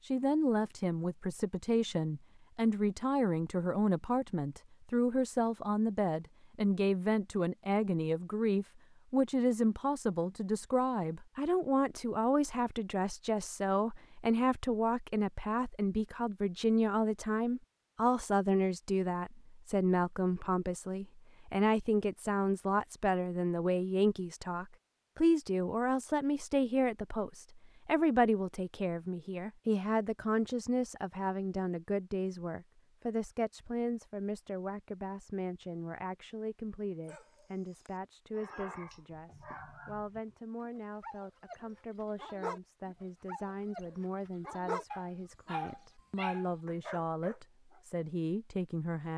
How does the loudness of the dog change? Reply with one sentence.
The loudness of the dog goes up.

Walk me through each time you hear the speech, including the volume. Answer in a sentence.
The speech can be heard from 0.0 to 49.1 s, getting quieter.